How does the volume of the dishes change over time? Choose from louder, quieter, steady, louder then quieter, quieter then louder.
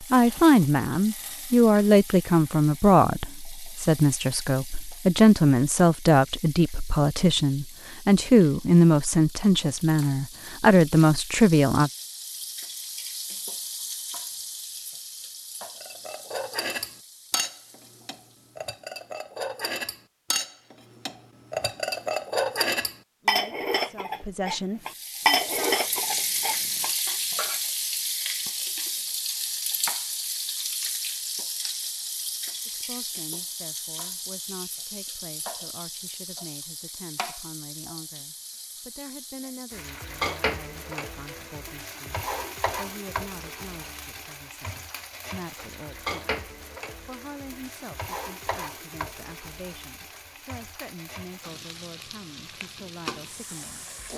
louder.